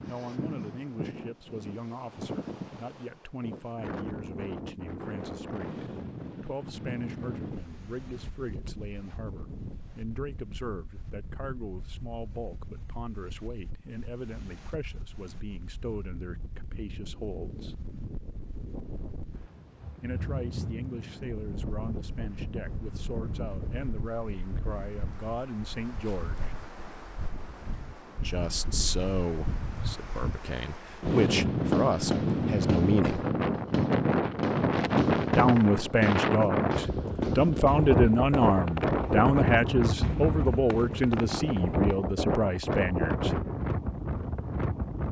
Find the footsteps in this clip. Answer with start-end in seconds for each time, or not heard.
not heard.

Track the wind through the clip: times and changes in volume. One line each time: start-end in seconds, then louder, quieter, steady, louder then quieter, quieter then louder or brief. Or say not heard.
0.0-45.0 quieter then louder.